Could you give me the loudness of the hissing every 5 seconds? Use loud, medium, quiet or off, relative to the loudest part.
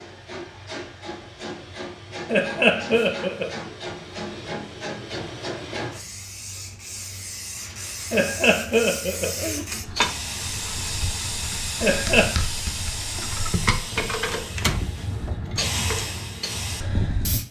medium, medium, loud, loud.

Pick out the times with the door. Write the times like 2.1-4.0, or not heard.
14.3-15.7.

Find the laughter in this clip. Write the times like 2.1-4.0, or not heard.
2.2-3.5, 8.1-9.7, 11.8-12.3.